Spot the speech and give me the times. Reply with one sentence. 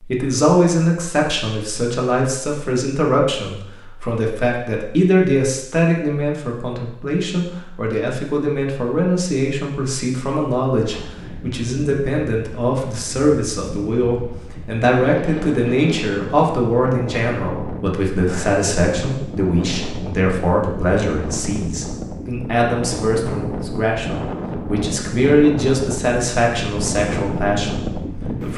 You can hear the speech from 0.0 to 28.5 s.